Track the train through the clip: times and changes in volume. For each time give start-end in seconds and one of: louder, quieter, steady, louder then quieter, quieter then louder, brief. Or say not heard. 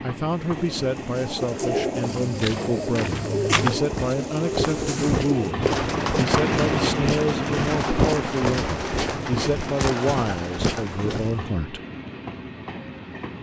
0.0-13.3 louder then quieter.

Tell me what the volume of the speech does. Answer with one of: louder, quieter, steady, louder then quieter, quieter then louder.
steady.